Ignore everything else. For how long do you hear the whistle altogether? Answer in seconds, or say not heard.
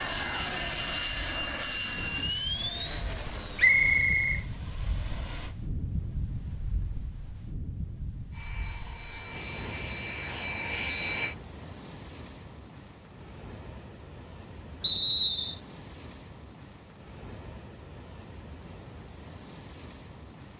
2 s.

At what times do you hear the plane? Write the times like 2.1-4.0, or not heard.
0.0-5.5, 8.3-11.3.